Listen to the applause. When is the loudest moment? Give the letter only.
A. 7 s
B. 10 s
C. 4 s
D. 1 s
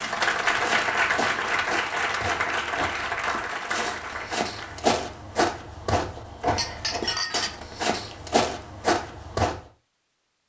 D.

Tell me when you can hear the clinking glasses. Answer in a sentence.
The clinking glasses can be heard from 6.5 to 7.5 s.